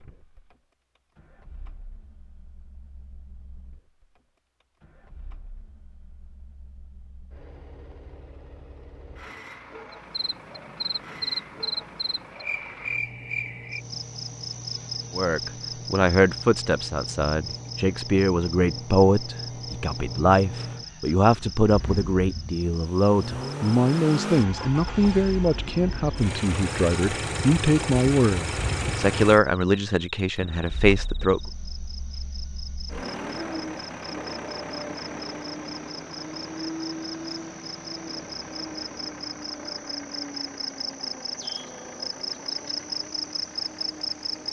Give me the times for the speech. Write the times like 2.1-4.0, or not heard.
15.2-31.4.